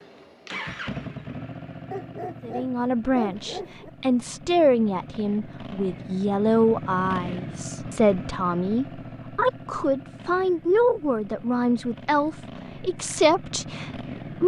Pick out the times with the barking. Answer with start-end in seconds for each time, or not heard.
1.9-3.9.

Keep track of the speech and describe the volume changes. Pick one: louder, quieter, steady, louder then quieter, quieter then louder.
steady.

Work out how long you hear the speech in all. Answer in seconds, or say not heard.
12 s.